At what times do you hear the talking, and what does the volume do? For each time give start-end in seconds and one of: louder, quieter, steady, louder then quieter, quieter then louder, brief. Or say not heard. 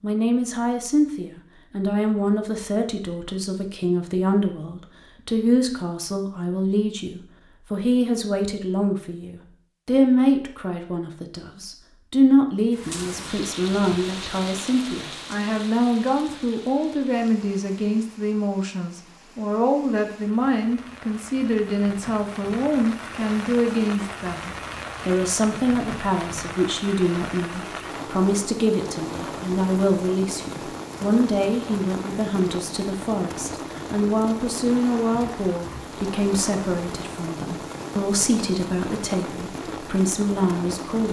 0.0-41.0 steady.